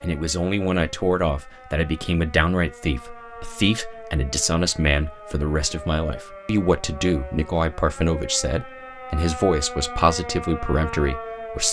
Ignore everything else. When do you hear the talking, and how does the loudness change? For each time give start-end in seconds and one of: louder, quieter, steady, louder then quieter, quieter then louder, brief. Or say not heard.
0.0-11.6 steady.